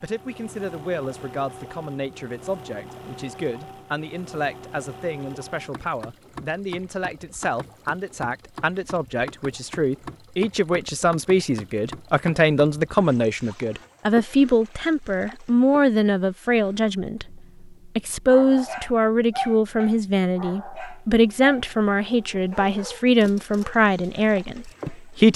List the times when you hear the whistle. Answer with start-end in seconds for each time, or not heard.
not heard.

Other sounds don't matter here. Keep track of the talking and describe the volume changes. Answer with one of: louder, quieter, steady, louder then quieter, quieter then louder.
louder.